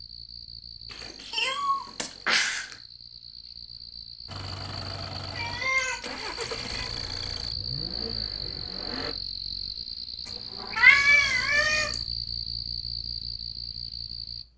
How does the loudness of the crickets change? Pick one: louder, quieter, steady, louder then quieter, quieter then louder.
louder.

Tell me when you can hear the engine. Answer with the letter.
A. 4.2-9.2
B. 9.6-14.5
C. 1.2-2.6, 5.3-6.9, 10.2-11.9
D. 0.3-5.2
A.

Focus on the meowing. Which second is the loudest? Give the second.
11 s.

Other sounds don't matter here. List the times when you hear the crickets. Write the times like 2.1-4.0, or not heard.
0.0-14.5.